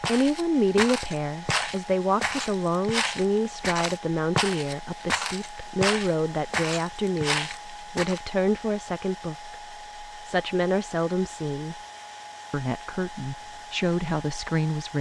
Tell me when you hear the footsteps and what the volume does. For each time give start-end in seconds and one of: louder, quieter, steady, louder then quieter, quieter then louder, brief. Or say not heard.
0.0-8.2 steady.